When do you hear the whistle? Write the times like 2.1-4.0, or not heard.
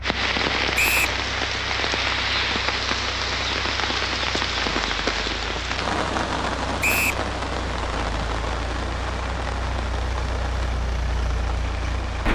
0.8-1.2, 6.8-7.2.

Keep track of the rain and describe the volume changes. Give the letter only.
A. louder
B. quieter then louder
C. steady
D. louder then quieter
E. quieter
E.